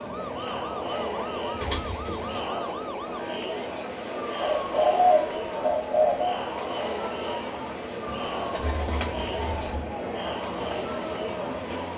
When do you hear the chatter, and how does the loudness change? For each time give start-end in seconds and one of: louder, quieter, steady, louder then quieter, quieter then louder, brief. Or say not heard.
0.0-11.9 steady.